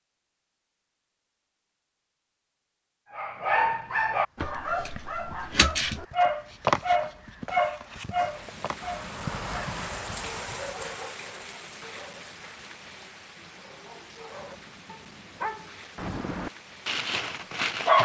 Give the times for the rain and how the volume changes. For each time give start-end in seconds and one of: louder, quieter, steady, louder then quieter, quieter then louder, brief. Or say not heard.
8.1-17.7 quieter.